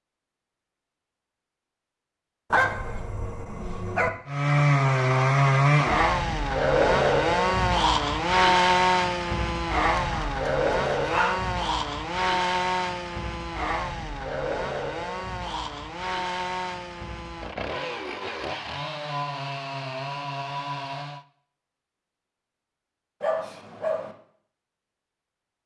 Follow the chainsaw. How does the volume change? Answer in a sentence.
The loudness of the chainsaw goes down.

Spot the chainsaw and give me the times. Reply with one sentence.
The chainsaw can be heard from 4.2 to 21.2 s.